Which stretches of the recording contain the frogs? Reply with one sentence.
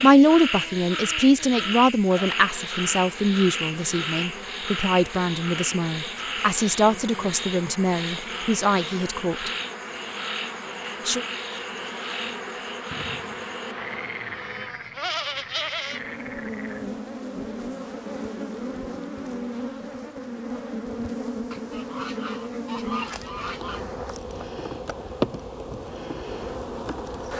The frogs can be heard from 0.0 to 16.9 s.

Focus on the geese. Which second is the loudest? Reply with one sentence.
The loudest moment of the geese is at 23 seconds.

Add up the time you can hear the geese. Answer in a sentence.
The geese can be heard for 2 seconds in total.